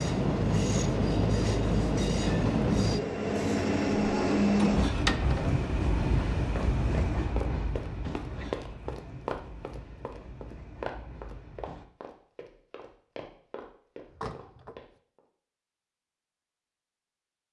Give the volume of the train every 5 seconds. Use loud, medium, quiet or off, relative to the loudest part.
loud, medium, quiet, off.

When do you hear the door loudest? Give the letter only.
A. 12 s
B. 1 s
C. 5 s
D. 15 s
C.